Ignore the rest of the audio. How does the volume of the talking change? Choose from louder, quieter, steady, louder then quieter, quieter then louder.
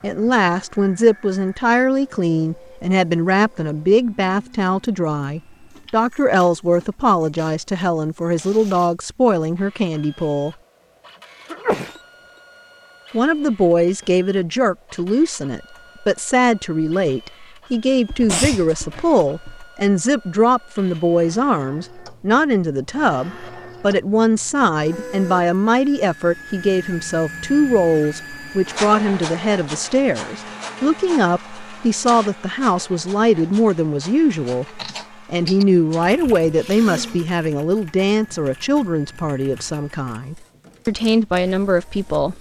steady.